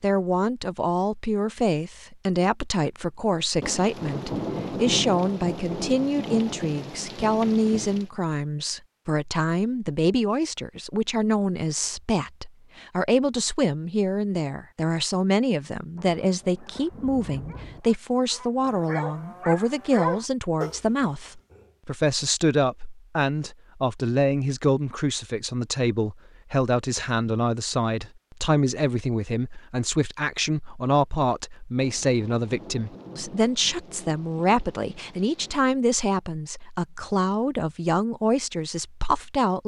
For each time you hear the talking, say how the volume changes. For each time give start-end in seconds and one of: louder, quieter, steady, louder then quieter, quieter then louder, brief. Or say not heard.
0.0-39.6 steady.